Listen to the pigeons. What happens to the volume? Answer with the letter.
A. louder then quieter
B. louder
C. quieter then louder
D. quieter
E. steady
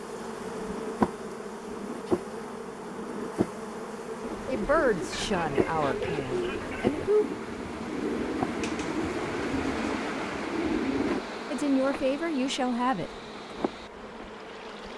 E.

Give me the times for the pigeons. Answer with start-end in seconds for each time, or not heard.
4.2-11.2.